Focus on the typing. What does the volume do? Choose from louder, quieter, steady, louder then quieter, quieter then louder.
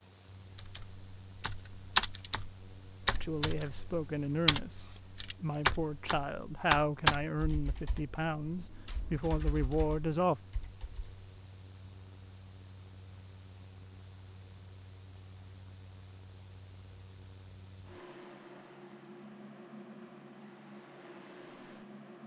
quieter.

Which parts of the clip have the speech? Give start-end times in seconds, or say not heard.
3.2-10.4.